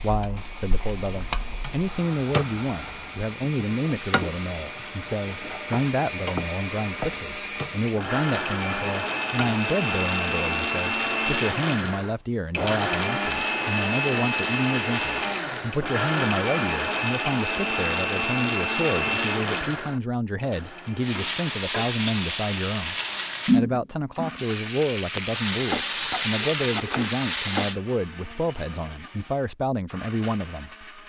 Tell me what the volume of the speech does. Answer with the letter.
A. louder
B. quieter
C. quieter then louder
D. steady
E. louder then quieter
D.